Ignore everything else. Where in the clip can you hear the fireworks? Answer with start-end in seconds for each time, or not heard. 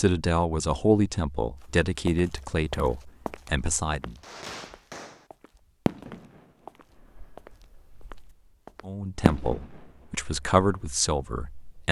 4.2-8.5, 9.2-11.8.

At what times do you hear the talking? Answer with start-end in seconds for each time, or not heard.
0.0-4.2, 8.8-11.8.